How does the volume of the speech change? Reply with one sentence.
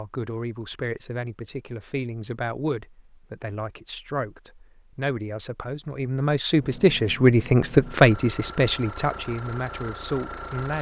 The volume of the speech goes up, then down.